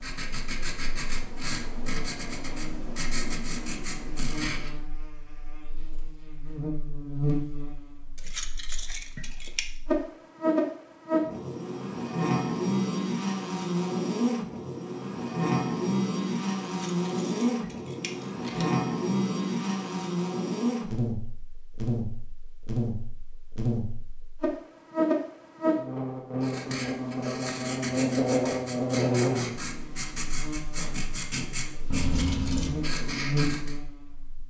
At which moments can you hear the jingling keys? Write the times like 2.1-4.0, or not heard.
8.2-9.6, 16.7-18.6, 31.9-32.8.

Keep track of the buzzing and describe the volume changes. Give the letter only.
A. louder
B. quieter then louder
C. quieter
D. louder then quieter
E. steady
A.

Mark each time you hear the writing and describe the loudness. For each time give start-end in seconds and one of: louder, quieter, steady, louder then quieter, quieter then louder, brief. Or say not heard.
0.0-4.8 steady
26.4-33.8 steady.